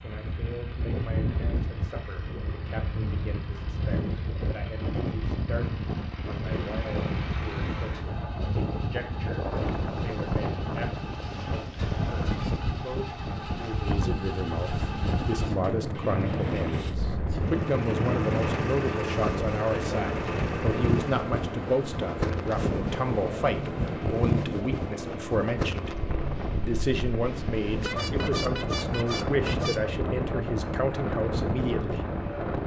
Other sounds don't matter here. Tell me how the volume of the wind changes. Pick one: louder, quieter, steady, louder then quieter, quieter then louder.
steady.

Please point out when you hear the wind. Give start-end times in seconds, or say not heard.
0.0-32.6.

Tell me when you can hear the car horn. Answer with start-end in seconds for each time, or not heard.
12.2-12.8, 27.6-29.8.